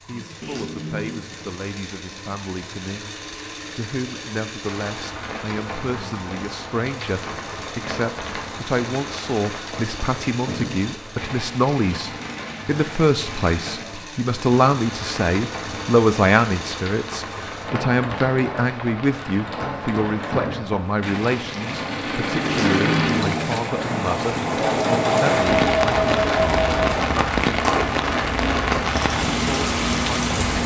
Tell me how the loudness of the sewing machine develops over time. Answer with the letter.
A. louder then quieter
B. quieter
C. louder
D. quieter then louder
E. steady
C.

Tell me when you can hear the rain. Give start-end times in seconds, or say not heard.
4.6-30.6.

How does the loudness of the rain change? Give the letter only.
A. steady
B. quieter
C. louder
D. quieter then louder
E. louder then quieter
C.